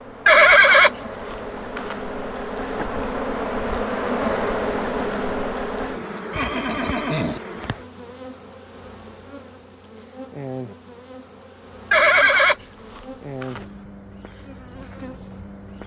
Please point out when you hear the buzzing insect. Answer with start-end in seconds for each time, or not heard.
0.0-15.8.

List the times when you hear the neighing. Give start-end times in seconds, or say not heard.
0.2-1.9, 6.3-7.4, 11.9-13.6.